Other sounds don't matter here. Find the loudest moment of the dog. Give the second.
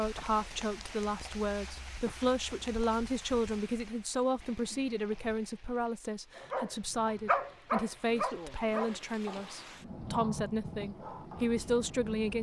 7 s.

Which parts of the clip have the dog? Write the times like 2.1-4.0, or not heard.
6.3-11.6.